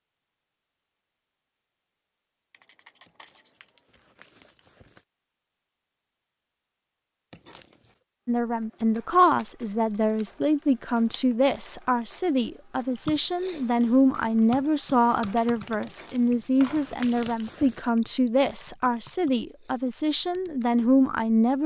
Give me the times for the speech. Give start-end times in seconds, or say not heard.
8.2-21.6.